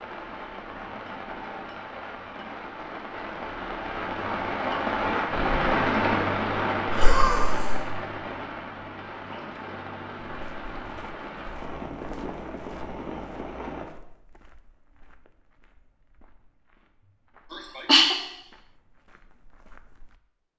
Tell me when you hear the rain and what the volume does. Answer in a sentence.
The rain can be heard from 0.0 to 13.8 s, getting louder then quieter.